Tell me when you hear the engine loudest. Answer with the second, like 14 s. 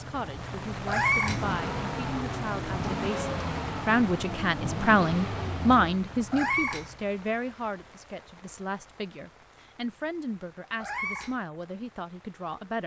3 s.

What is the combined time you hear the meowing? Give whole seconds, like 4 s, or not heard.
2 s.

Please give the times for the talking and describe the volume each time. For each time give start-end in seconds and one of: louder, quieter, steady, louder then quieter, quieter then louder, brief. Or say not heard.
0.0-12.8 louder then quieter.